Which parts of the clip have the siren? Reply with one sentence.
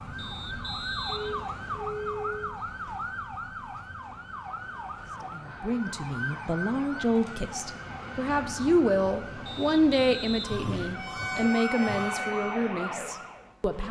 The siren can be heard from 0.0 to 13.8 s.